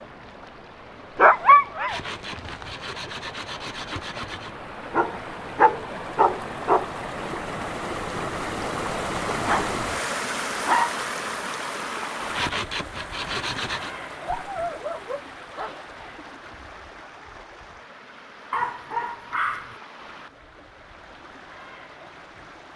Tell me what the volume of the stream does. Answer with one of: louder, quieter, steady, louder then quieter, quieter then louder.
louder then quieter.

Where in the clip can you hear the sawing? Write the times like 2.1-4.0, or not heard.
1.9-4.5, 12.3-13.9.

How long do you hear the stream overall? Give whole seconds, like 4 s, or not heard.
23 s.